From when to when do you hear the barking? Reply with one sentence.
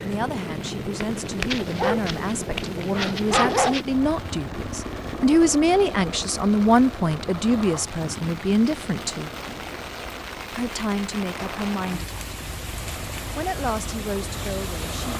The barking can be heard from 1.2 to 3.9 s.